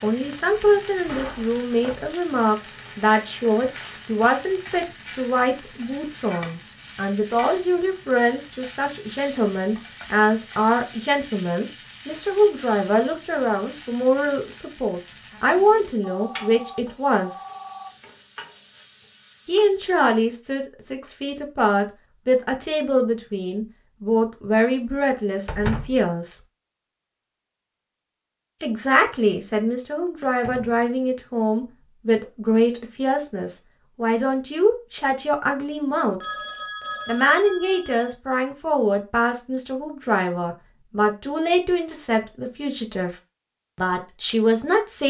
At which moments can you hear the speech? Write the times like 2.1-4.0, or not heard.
0.0-17.4, 19.4-26.4, 28.6-36.2, 37.0-43.1, 43.8-45.0.